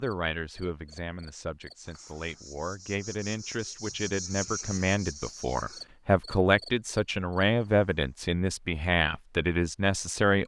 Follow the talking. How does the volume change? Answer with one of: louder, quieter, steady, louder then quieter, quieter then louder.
louder.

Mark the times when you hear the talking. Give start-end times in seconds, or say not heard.
0.0-10.4.